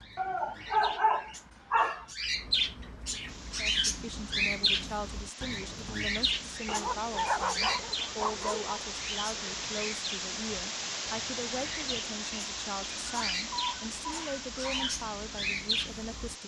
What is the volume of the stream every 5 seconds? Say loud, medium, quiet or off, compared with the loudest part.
medium, loud, loud, medium.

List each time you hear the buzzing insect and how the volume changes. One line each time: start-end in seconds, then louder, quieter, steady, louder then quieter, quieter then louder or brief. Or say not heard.
not heard.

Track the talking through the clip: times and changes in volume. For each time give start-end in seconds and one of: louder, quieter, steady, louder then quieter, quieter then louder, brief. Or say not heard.
3.5-16.4 steady.